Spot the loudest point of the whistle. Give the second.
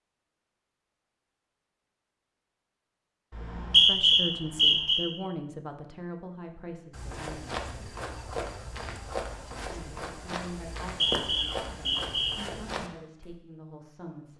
4 s.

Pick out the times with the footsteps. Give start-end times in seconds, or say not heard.
6.9-13.3.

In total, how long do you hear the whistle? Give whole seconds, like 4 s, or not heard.
3 s.